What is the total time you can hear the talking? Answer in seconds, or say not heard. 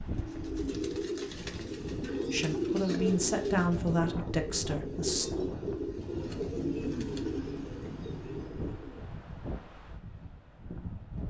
3 s.